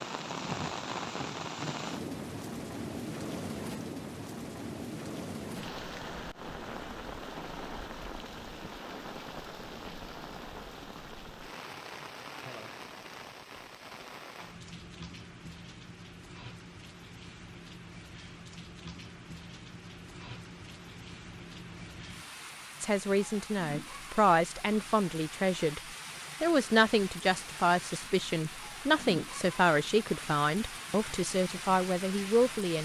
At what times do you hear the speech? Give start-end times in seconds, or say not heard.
22.8-25.8, 26.4-32.7.